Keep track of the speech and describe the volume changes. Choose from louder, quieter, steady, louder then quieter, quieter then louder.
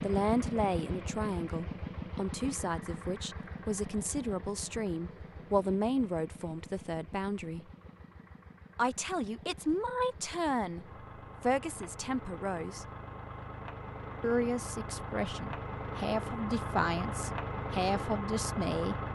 steady.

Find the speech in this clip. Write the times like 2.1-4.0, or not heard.
0.0-7.7, 8.8-12.8, 14.2-18.9.